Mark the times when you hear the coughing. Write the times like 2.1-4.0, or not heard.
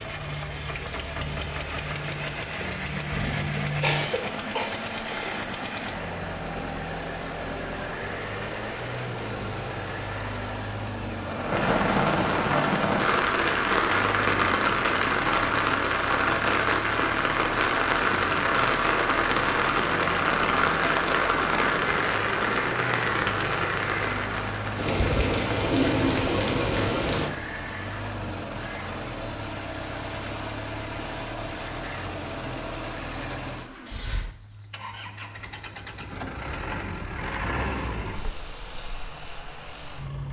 3.2-4.8.